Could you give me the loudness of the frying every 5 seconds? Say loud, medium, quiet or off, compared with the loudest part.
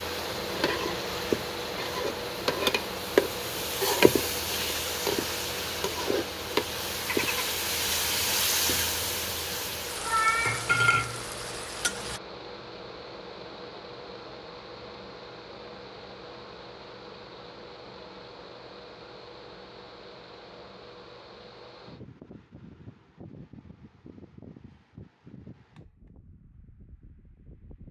loud, loud, loud, off, off, off.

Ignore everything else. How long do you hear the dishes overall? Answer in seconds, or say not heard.
not heard.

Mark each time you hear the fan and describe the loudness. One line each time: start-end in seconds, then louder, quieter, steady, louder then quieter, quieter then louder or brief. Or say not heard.
0.0-27.8 quieter.